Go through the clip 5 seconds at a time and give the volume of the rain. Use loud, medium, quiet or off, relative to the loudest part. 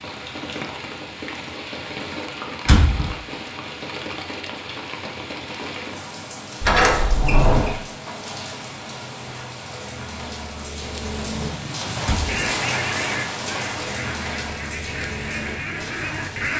loud, medium, loud, medium.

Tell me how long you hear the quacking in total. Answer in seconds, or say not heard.
5 s.